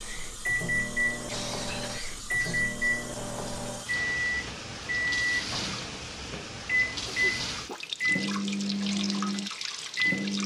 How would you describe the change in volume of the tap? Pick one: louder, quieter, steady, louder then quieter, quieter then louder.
louder.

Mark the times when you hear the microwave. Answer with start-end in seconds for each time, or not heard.
0.0-10.4.